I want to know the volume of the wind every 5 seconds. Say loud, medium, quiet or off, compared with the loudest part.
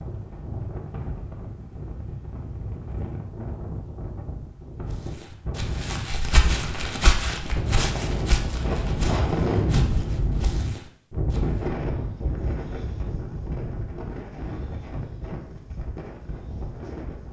medium, loud, loud, medium.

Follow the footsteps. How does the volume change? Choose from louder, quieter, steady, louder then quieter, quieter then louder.
quieter.